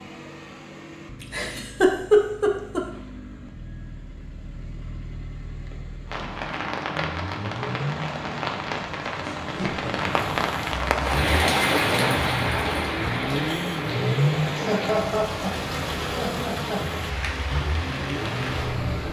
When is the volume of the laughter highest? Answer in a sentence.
The volume of the laughter peaks at 2 seconds.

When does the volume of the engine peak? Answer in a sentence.
The volume of the engine peaks at 14 seconds.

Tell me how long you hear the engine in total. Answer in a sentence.
The engine can be heard for 19 seconds in total.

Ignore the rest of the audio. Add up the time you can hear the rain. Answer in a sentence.
You can hear the rain for 13 seconds altogether.